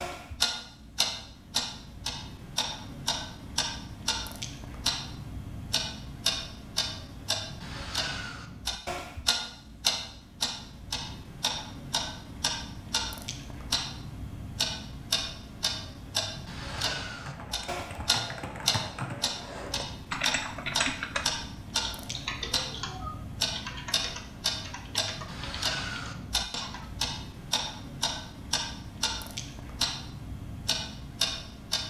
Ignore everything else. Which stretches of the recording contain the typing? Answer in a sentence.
You can hear the typing from 16.6 to 26.9 s.